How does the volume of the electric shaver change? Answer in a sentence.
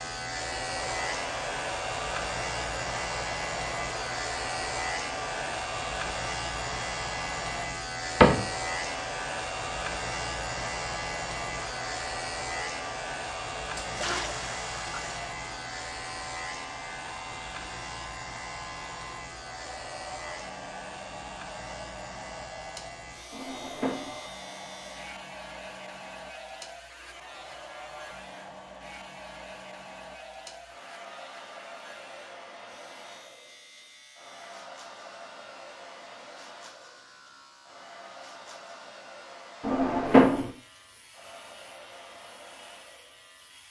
The volume of the electric shaver goes down.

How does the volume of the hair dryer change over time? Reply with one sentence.
The loudness of the hair dryer goes down.